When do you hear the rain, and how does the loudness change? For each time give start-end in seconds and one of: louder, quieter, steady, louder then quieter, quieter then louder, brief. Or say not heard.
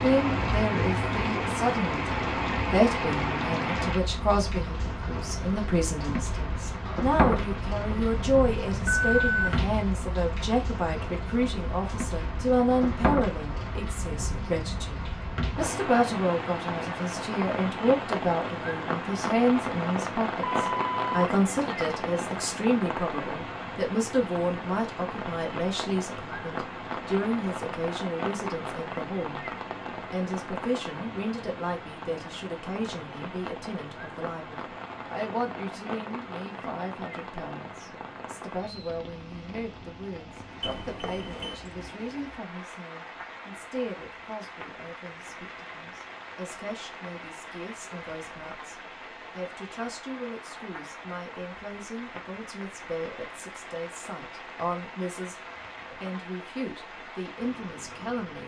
0.0-58.4 quieter.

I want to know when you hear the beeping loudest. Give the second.
9 s.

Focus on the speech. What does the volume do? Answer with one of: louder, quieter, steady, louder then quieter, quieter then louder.
quieter.